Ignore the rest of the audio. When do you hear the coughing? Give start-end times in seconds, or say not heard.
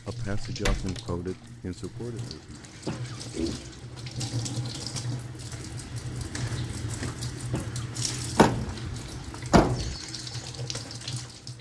2.9-3.7, 7.5-8.0.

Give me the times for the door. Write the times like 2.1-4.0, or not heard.
0.5-1.0, 8.3-9.9.